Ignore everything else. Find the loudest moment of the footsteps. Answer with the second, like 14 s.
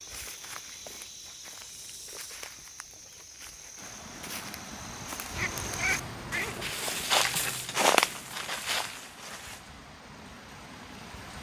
8 s.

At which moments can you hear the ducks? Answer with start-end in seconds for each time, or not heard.
5.3-6.7.